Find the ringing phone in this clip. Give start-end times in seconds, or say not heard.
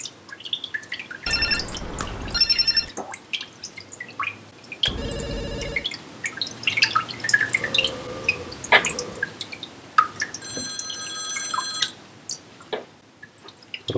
1.2-2.9, 4.8-5.9, 10.3-11.9.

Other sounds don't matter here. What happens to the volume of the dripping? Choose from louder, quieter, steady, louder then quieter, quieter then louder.
louder then quieter.